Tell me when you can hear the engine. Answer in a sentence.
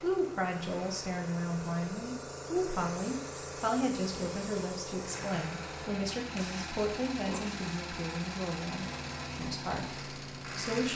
You can hear the engine from 0.0 to 10.9 s.